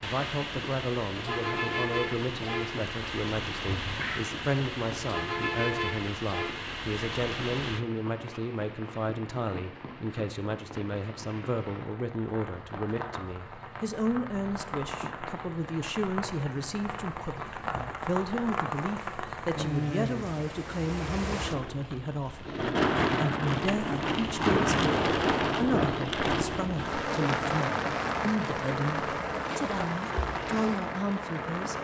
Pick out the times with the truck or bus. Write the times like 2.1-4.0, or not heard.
0.0-7.8.